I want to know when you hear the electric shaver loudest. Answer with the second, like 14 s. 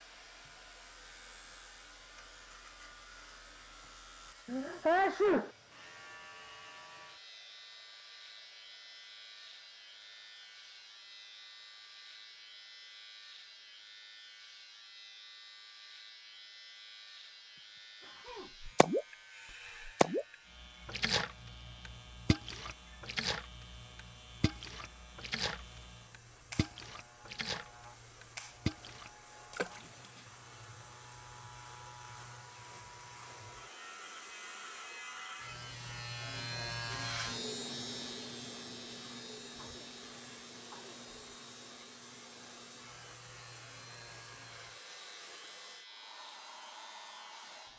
37 s.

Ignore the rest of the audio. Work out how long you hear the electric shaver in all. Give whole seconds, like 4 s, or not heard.
48 s.